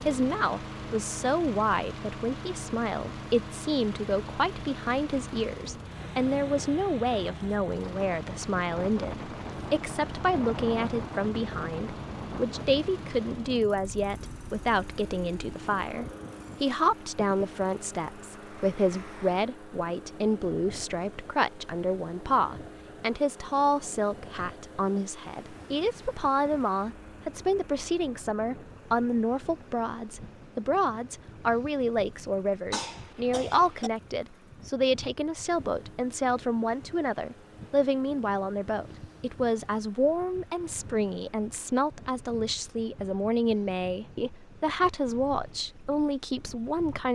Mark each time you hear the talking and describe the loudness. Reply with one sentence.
You can hear the talking from 0.0 to 47.1 s, at a steady volume.